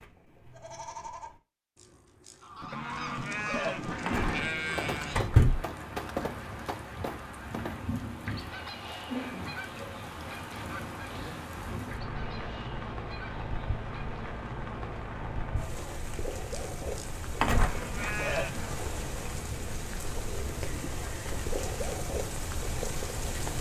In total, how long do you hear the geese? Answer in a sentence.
You can hear the geese for 12 seconds altogether.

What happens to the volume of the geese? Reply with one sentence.
The volume of the geese goes down.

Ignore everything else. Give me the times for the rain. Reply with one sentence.
You can hear the rain from 4.2 to 23.5 s.